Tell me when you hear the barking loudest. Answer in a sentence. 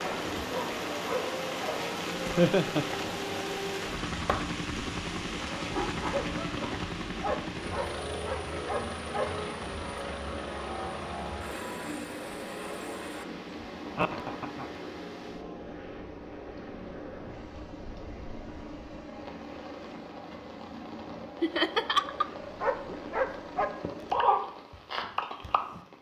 The volume of the barking peaks at 24 seconds.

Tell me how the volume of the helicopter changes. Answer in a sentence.
The loudness of the helicopter goes down.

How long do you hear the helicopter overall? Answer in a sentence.
The helicopter can be heard for 24 seconds in total.